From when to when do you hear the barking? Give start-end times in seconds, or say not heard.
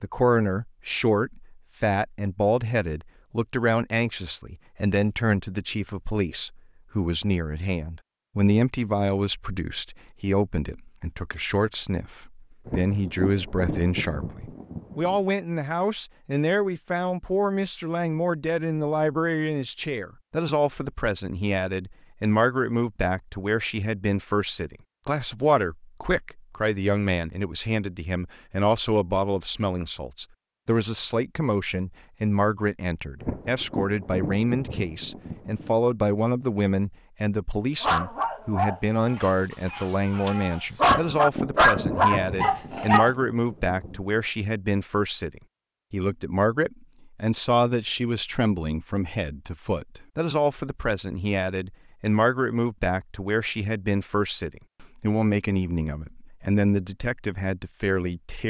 37.8-43.1.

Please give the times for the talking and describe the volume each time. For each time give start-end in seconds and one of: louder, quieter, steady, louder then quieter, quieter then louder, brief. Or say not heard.
0.0-58.4 steady.